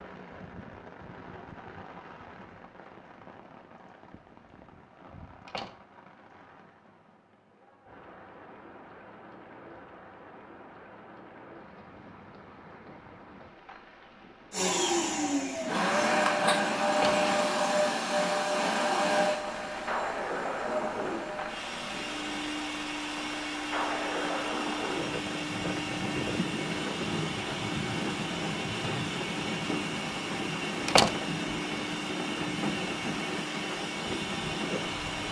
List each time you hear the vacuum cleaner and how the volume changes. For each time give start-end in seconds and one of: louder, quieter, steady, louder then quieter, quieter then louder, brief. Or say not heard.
14.5-35.2 quieter.